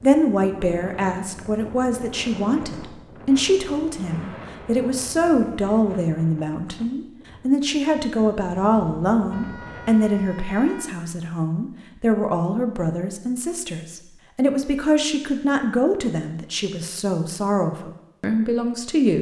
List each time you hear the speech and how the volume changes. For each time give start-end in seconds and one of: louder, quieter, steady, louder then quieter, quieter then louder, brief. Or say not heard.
0.0-19.1 steady.